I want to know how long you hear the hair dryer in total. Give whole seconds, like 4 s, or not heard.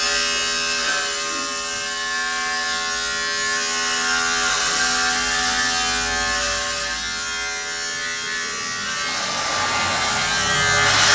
2 s.